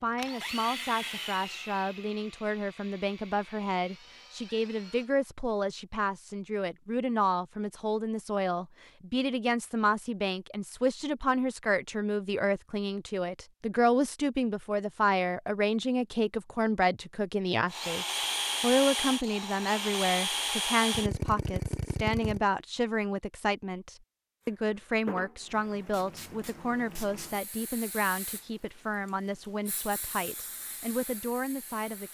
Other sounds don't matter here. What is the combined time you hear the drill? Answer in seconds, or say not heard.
10 s.